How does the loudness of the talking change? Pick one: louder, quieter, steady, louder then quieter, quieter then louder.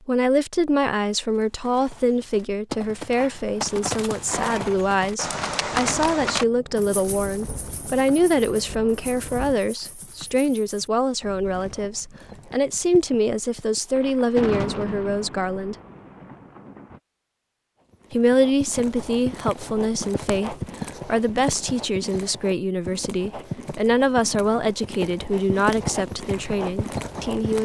steady.